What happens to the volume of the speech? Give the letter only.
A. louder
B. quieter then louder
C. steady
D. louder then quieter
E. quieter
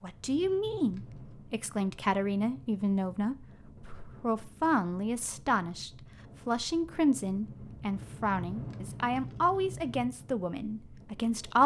C.